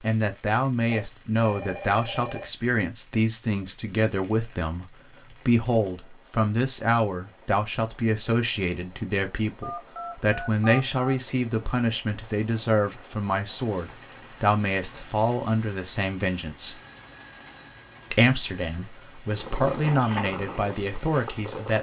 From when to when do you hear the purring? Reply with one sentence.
You can hear the purring from 19.2 to 21.7 s.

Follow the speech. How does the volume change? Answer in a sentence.
The loudness of the speech stays about the same.